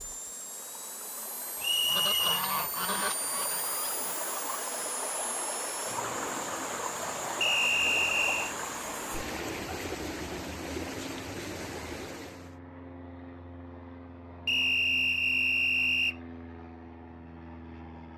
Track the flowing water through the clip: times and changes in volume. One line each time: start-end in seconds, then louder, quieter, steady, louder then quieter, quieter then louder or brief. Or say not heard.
0.0-12.6 louder.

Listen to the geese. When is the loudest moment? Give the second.
2 s.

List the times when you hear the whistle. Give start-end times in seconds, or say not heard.
1.6-2.5, 7.4-8.6, 14.4-16.1.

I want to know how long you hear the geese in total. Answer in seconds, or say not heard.
2 s.